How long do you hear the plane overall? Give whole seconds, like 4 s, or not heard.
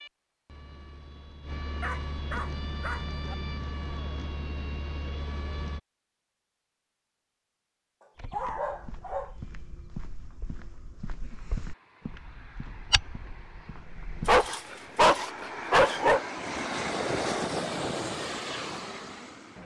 14 s.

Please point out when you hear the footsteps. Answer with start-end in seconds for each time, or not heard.
8.2-14.5.